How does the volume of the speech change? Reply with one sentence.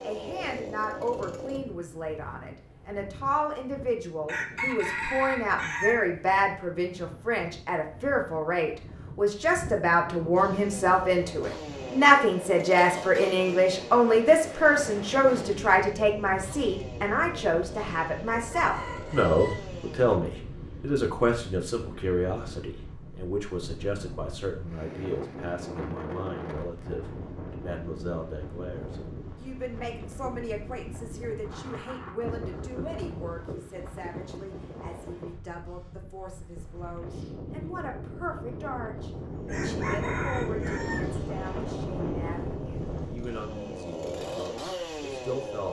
The loudness of the speech goes up, then down.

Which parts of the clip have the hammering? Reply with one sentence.
You can't hear the hammering here.